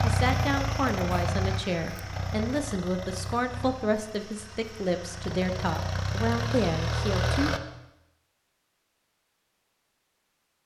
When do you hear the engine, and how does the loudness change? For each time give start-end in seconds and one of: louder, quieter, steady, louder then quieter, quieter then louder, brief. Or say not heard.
0.0-7.6 quieter then louder.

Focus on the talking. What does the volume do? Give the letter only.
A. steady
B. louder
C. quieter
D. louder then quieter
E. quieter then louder
A.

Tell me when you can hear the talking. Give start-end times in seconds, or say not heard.
0.0-7.5.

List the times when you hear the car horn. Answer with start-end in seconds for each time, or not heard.
not heard.